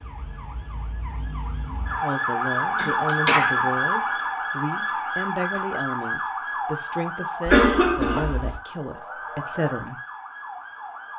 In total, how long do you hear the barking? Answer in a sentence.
The barking can't be heard in this clip.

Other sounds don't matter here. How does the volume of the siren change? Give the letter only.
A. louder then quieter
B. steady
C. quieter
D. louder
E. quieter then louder
A.